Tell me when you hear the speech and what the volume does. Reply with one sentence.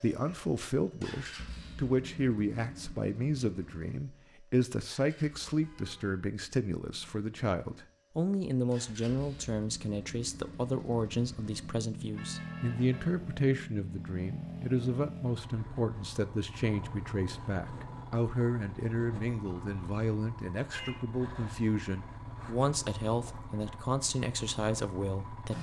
You can hear the speech from 0.0 to 25.5 s, at a steady volume.